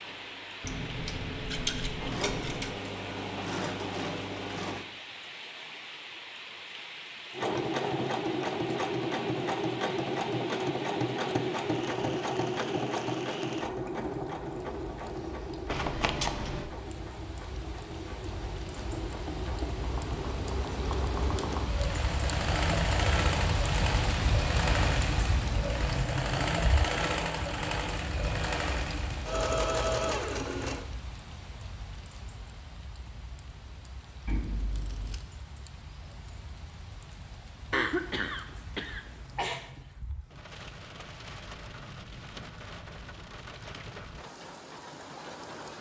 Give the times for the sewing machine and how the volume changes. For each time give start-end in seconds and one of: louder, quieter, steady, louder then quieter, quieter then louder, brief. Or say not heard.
0.0-4.8 louder
7.3-30.9 quieter then louder.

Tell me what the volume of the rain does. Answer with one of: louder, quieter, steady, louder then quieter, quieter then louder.
louder then quieter.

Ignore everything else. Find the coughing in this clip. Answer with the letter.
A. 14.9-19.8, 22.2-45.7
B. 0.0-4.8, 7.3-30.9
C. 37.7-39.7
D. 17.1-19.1
C.